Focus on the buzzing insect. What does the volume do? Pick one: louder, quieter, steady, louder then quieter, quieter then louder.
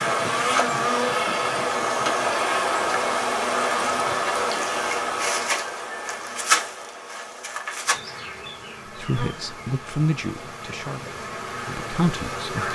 quieter.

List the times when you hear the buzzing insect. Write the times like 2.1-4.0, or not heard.
0.0-12.7.